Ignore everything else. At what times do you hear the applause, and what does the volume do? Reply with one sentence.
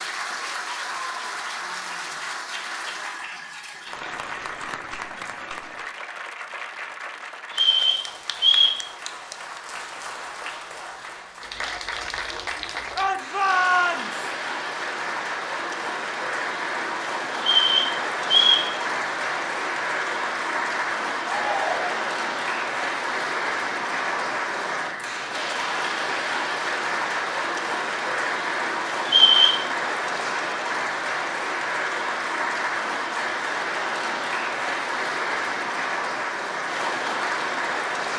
The applause can be heard from 0.0 to 38.1 s, getting louder.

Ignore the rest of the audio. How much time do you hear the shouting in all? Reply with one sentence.
The shouting can be heard for 2 seconds in total.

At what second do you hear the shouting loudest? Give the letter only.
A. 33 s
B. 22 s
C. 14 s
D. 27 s
C.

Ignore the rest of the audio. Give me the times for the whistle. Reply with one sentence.
You can hear the whistle from 7.5 to 8.8 s, from 17.4 to 18.7 s and from 29.1 to 29.6 s.